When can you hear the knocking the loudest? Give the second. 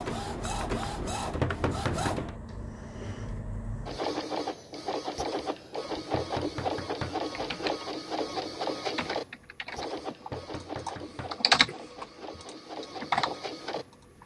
2 s.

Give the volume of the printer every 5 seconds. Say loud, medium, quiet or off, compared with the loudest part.
loud, loud, medium.